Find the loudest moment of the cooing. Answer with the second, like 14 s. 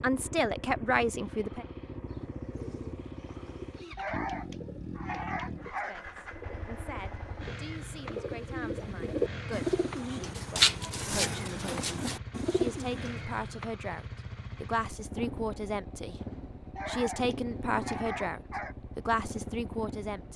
11 s.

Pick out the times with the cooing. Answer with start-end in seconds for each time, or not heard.
1.9-13.1.